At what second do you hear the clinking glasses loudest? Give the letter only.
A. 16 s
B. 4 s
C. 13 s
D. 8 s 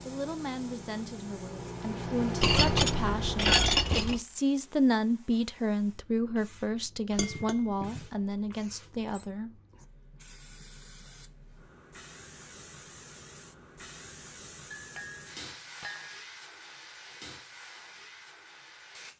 B.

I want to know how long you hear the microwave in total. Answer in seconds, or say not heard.
4 s.